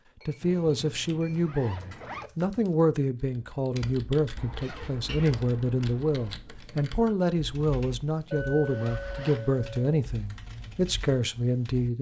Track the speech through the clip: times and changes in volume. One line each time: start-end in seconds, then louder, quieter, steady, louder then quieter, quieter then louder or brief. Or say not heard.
0.2-11.9 steady.